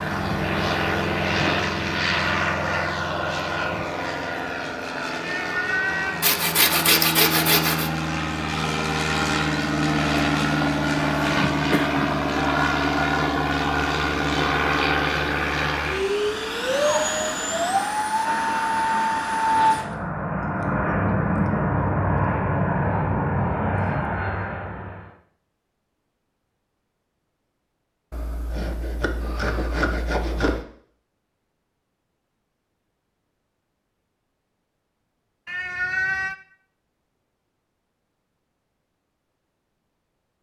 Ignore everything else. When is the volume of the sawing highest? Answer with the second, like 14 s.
7 s.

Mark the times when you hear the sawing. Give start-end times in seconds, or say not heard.
6.2-7.9, 28.1-30.6.